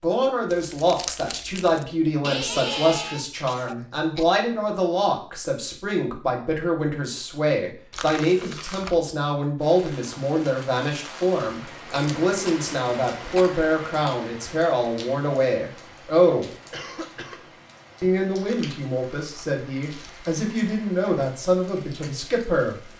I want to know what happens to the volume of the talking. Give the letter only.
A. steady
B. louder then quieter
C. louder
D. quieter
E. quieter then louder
A.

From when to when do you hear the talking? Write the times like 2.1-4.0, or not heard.
0.0-16.5, 18.0-22.9.